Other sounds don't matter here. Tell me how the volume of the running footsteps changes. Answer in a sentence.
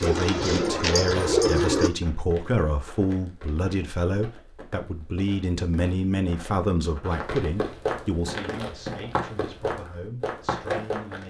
The volume of the running footsteps goes up.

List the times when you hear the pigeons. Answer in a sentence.
The pigeons can be heard from 0.0 to 1.9 s.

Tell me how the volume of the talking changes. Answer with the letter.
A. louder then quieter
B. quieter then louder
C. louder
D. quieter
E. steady
D.